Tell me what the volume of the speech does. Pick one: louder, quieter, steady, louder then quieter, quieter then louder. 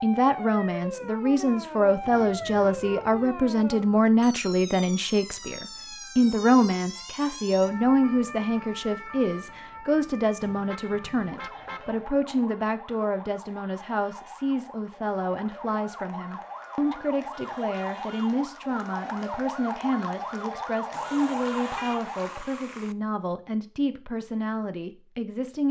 quieter.